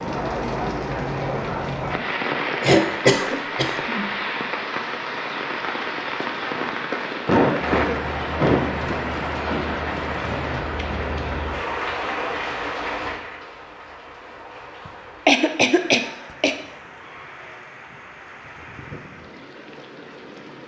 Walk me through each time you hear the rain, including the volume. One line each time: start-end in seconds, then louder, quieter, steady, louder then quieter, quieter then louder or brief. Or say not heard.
0.0-20.6 quieter.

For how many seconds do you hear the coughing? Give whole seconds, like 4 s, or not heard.
5 s.